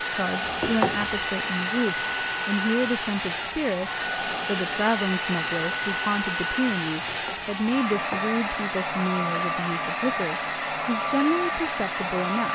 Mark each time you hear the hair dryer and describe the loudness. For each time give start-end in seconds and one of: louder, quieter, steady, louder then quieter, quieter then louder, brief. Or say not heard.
0.0-12.5 steady.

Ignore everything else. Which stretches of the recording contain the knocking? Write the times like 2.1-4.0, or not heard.
0.4-1.2, 7.0-8.2.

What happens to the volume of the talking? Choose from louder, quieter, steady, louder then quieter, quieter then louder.
steady.